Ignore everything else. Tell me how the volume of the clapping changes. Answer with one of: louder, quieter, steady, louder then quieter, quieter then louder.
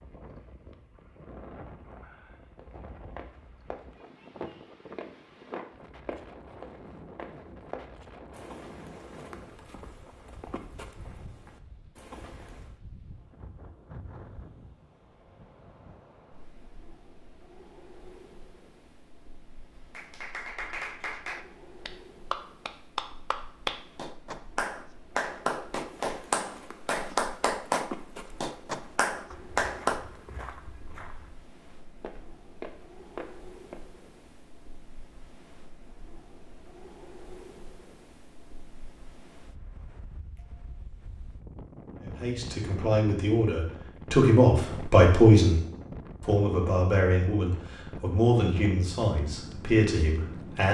louder.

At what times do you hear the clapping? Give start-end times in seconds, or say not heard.
19.9-30.1.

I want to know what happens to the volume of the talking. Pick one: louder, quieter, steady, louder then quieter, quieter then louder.
louder then quieter.